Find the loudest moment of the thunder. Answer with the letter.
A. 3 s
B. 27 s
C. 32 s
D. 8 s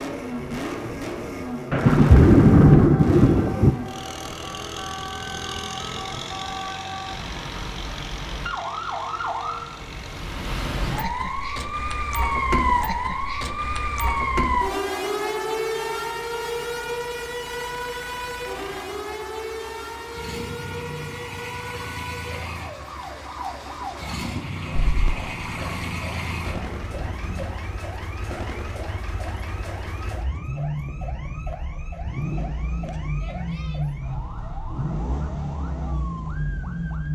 A.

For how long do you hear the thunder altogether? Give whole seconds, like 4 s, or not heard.
5 s.